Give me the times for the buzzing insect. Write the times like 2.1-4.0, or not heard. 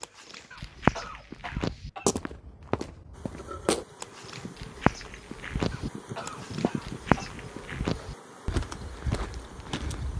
3.1-10.1.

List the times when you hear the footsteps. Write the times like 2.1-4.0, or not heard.
0.0-10.1.